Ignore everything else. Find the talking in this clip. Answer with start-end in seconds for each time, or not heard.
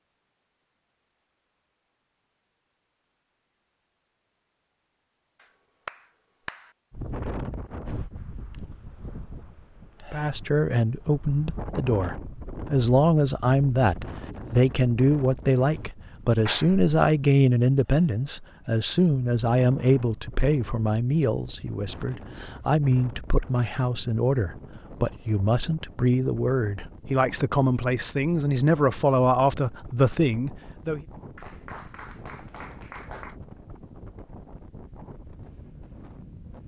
10.0-31.1.